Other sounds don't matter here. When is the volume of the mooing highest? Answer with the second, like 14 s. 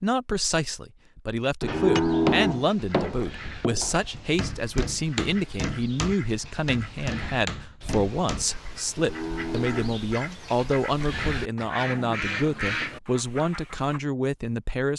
2 s.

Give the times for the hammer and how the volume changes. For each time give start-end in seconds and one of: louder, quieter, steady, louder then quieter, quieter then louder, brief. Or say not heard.
1.6-8.4 quieter.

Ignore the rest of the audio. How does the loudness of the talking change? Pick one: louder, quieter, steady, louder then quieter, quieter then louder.
steady.